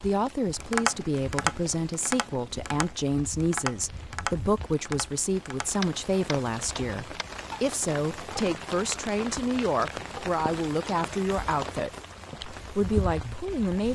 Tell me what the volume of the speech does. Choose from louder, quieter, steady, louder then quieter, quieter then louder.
steady.